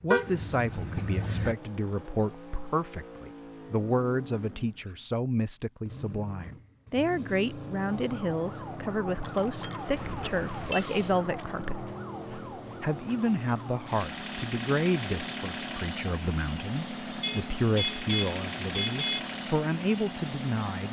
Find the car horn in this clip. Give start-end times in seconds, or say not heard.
0.1-1.6, 9.9-10.8, 17.2-19.2.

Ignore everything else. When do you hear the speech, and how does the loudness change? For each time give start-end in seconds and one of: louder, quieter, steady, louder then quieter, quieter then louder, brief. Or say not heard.
0.0-20.8 steady.